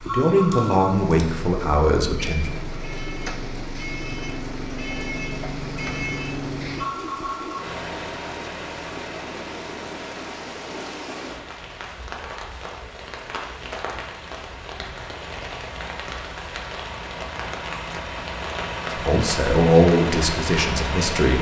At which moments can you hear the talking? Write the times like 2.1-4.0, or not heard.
0.1-2.5, 18.9-21.3.